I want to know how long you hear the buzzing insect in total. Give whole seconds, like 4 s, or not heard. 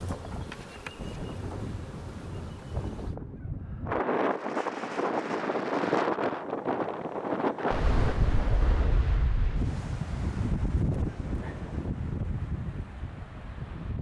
3 s.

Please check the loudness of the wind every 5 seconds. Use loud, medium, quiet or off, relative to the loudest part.
medium, loud, medium.